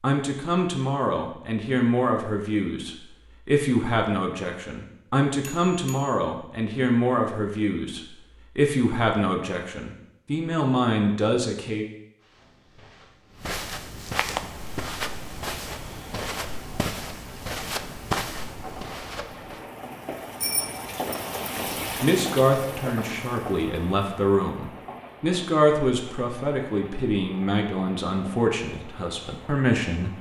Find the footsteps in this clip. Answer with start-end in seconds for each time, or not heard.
12.2-19.6.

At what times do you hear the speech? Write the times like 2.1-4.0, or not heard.
0.0-11.8, 22.0-30.1.